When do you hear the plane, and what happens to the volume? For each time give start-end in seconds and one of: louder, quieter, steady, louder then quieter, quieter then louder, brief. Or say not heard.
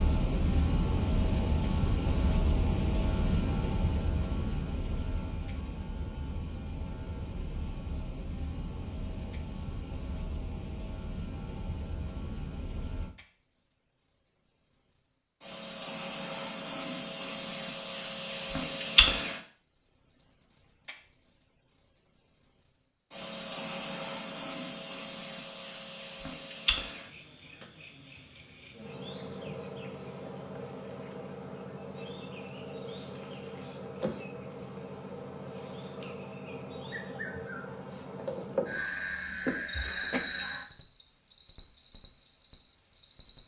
0.0-13.2 quieter.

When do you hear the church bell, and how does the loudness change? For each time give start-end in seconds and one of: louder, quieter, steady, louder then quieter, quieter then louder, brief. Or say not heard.
not heard.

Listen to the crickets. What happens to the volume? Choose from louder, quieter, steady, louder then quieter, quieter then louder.
louder then quieter.